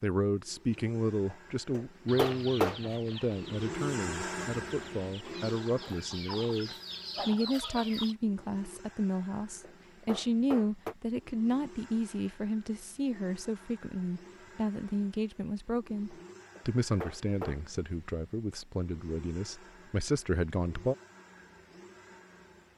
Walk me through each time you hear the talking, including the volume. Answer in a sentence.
You can hear the talking from 0.0 to 20.9 s, at a steady volume.